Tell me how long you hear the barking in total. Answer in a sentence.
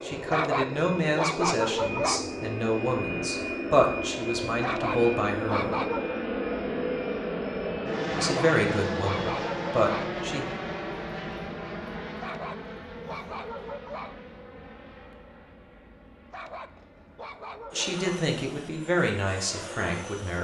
You can hear the barking for 9 seconds altogether.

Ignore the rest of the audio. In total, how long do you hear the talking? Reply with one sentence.
The talking can be heard for 11 seconds in total.